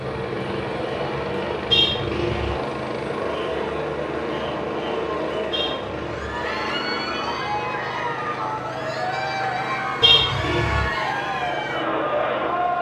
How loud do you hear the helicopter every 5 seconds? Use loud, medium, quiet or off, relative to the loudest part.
loud, loud, medium.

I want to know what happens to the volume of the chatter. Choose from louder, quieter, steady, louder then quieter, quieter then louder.
louder.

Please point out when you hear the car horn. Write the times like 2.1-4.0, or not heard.
1.7-2.5, 5.5-6.4, 10.0-10.9.